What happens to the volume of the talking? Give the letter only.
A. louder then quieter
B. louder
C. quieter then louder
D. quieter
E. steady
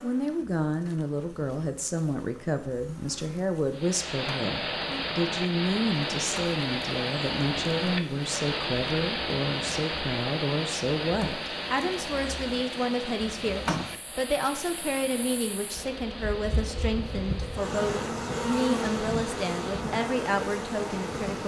E.